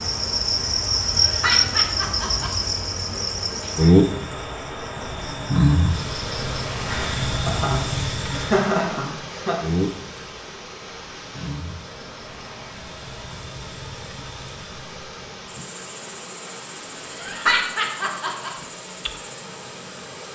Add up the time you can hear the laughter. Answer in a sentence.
The laughter can be heard for 6 seconds in total.